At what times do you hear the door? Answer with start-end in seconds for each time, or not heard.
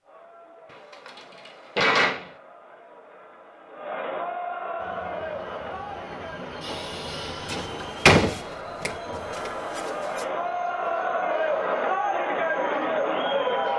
0.7-2.3, 7.5-9.8.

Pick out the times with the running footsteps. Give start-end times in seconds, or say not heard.
not heard.